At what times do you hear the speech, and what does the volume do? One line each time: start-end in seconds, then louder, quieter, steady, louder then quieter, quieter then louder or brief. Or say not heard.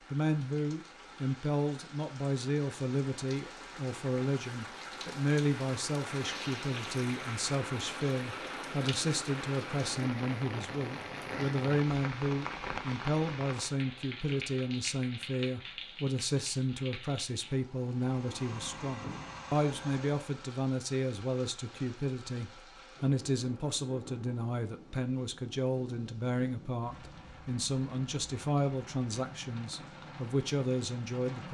0.1-31.4 steady.